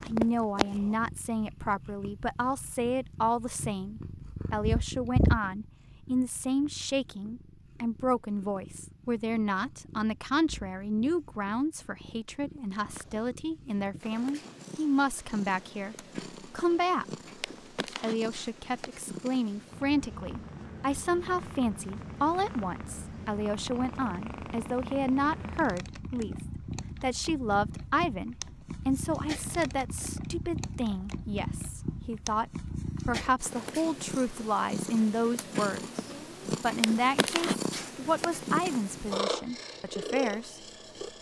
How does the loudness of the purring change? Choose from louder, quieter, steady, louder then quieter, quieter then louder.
quieter then louder.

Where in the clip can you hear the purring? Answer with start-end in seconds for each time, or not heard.
0.0-41.1.